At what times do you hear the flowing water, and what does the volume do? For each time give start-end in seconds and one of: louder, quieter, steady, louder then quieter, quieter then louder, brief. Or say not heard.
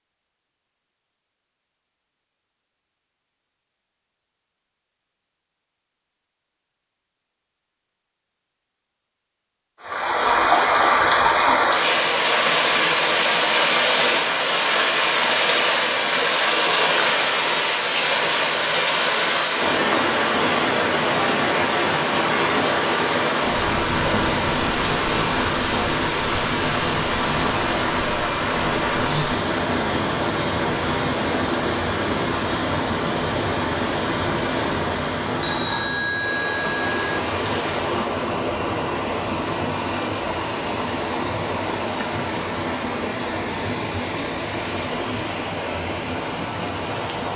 9.8-47.3 quieter.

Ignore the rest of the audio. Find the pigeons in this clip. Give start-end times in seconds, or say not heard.
not heard.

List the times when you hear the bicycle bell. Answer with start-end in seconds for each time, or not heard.
35.4-37.0.